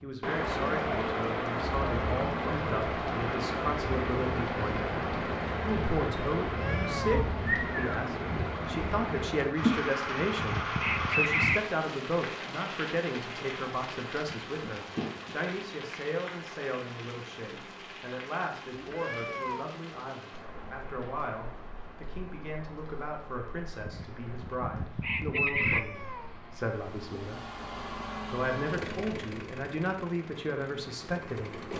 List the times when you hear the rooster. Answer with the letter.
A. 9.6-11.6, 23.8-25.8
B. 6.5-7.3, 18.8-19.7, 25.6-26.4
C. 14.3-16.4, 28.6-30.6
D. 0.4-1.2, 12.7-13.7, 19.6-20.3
A.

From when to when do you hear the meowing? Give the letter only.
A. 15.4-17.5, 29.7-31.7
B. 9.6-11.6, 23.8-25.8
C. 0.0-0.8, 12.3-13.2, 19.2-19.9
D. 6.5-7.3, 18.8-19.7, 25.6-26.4
D.